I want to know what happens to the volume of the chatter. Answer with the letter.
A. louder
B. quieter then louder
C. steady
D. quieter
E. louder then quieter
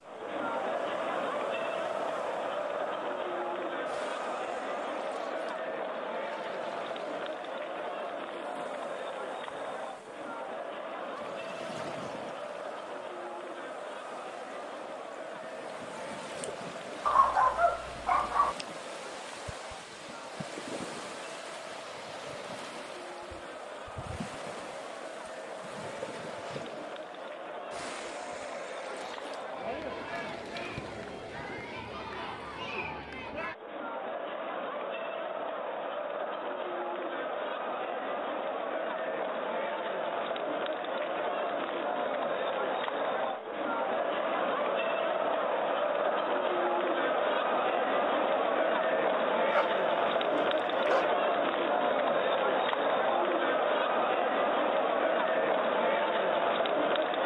B.